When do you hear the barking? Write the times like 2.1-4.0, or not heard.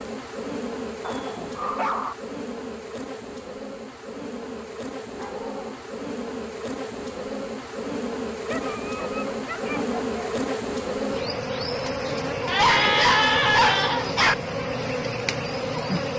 1.0-2.1, 4.5-5.9, 8.4-10.4, 12.4-14.3.